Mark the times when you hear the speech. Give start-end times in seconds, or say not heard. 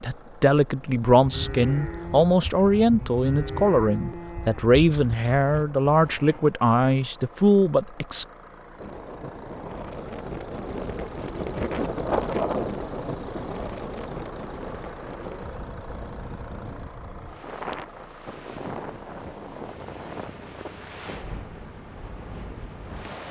0.0-8.2.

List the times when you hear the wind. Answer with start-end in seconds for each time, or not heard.
8.8-23.2.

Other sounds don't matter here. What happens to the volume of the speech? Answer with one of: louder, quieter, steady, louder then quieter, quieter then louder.
steady.